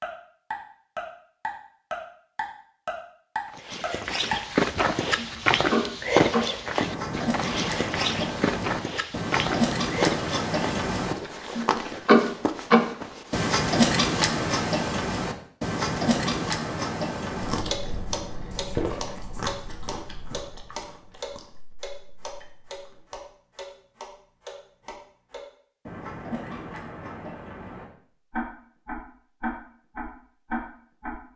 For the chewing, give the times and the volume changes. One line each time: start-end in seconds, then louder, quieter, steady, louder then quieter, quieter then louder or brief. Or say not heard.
17.4-23.2 louder then quieter.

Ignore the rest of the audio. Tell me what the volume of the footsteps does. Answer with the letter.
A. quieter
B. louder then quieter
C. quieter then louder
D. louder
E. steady
A.